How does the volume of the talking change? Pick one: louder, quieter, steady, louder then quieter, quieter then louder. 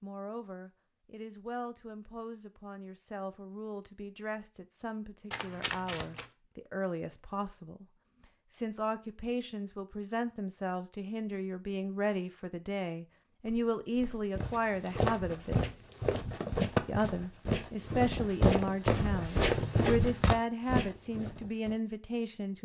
louder.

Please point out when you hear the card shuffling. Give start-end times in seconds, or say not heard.
5.3-6.3.